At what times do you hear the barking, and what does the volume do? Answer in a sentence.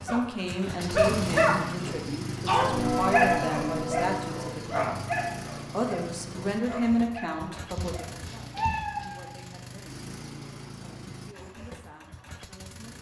The barking can be heard from 0.1 to 8.2 s, getting quieter.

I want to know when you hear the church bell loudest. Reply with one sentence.
The loudest moment of the church bell is at 3 seconds.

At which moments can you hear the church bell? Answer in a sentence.
You can hear the church bell from 2.6 to 4.5 s.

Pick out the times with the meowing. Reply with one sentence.
You can hear the meowing from 7.8 to 9.3 s.